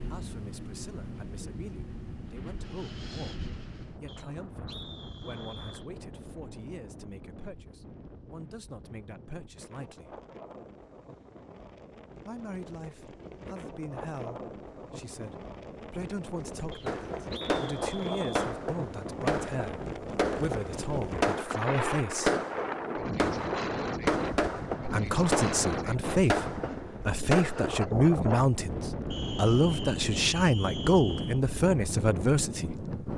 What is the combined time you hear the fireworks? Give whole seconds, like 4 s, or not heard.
11 s.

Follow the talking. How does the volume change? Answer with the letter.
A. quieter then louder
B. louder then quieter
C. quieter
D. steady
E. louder
E.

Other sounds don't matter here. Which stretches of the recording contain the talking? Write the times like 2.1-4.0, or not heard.
0.0-10.2, 12.2-22.4, 24.9-32.9.